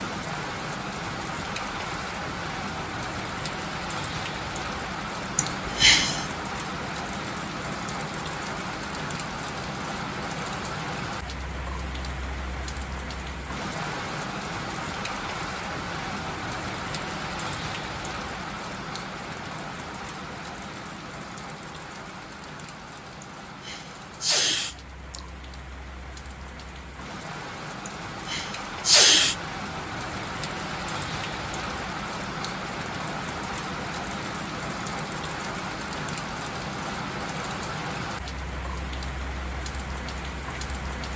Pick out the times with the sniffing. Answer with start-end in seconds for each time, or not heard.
5.3-6.3, 23.2-25.2, 27.9-29.4.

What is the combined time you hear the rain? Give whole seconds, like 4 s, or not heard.
41 s.